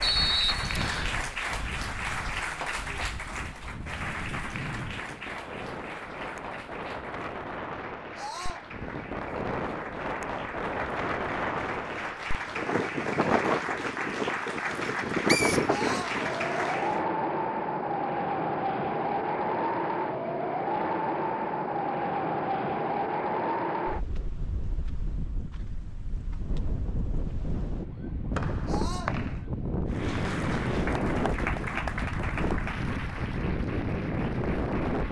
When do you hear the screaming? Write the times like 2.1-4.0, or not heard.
8.2-8.7, 15.7-16.2, 28.6-29.1.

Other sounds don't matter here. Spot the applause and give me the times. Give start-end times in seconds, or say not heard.
0.0-17.1, 29.9-35.0.